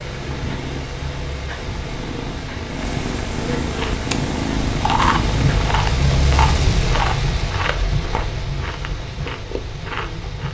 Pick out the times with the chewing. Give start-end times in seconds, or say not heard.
3.7-10.4.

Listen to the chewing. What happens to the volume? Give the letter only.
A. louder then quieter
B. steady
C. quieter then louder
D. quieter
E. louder
D.